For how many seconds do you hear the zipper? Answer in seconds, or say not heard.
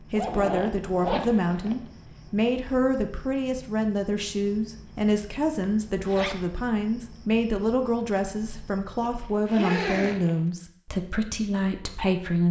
4 s.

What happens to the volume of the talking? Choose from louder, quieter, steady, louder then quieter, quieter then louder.
steady.